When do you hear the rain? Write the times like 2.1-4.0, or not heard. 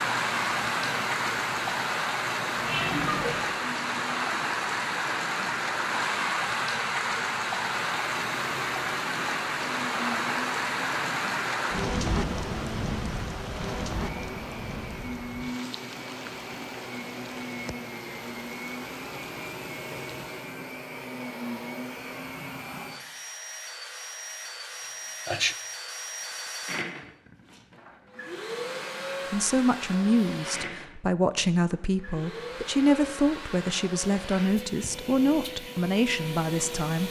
0.0-20.5.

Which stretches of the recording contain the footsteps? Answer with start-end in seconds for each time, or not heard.
not heard.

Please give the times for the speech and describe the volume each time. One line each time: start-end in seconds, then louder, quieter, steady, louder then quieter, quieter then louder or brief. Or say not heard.
29.3-37.0 steady.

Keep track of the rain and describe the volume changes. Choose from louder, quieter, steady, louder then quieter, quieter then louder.
quieter.